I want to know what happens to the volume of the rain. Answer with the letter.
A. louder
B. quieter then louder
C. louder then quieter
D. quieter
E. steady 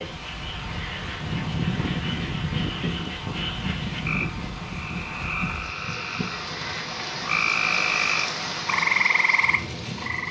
A.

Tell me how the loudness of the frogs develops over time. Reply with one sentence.
The volume of the frogs goes up.